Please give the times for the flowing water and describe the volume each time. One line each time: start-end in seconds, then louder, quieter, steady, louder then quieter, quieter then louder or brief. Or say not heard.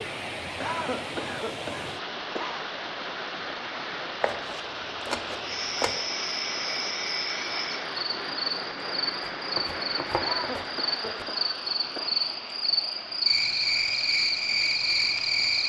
0.0-15.6 quieter.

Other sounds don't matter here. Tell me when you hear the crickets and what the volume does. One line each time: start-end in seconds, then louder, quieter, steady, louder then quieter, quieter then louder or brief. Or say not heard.
5.4-15.6 louder.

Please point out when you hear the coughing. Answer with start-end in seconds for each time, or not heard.
0.6-2.6, 10.2-12.1.